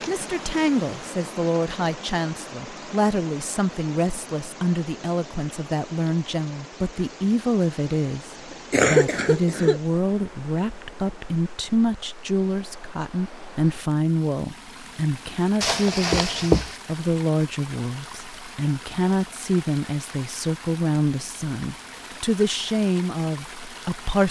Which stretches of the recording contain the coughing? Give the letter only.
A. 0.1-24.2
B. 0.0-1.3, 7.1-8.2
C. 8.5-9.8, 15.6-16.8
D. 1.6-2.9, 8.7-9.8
C.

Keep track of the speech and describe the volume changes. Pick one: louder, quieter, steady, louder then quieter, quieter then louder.
steady.